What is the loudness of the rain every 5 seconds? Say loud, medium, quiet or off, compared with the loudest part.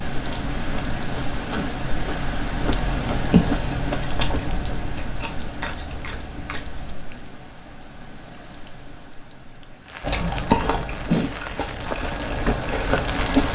loud, medium, loud.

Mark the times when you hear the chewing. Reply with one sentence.
You can hear the chewing from 0.1 to 7.0 s and from 10.0 to 13.4 s.